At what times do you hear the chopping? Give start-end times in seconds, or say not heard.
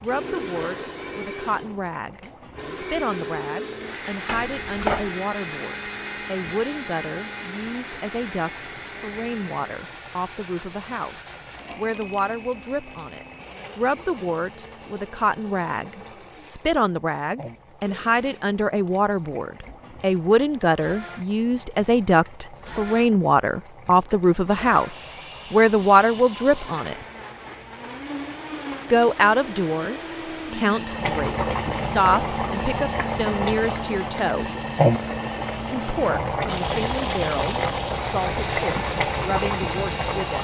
4.2-5.1.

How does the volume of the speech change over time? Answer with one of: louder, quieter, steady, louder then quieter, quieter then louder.
louder then quieter.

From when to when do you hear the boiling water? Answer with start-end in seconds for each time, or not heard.
0.0-40.3.